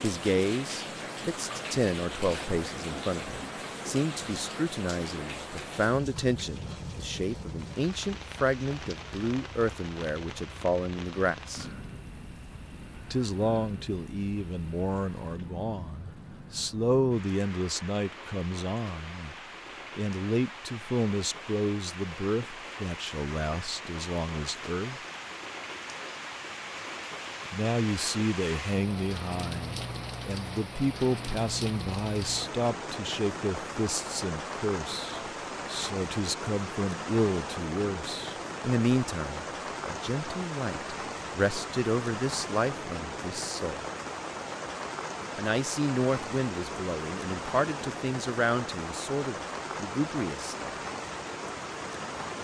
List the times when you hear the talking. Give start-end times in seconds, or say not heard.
0.0-11.7, 13.1-19.4, 19.9-25.0, 27.5-43.9, 45.4-50.8.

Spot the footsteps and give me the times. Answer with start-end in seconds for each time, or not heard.
not heard.